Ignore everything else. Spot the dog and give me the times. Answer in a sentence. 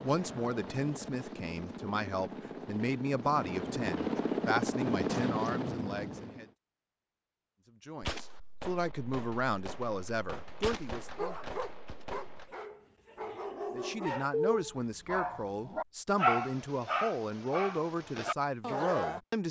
You can hear the dog from 11.2 to 19.2 s.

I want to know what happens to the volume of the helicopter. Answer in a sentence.
The volume of the helicopter goes up.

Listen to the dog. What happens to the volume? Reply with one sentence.
The loudness of the dog goes up, then down.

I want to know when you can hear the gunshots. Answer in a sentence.
You can hear the gunshots from 8.0 to 12.6 s.